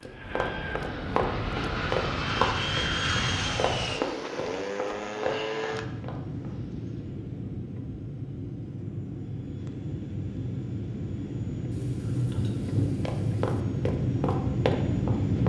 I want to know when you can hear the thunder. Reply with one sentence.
The thunder can be heard from 11.7 to 13.7 s.